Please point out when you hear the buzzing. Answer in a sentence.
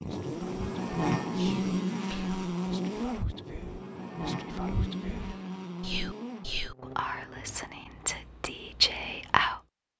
You can hear the buzzing from 0.0 to 7.7 s.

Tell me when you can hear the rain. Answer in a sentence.
The rain can't be heard in this clip.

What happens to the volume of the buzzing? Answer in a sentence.
The volume of the buzzing goes down.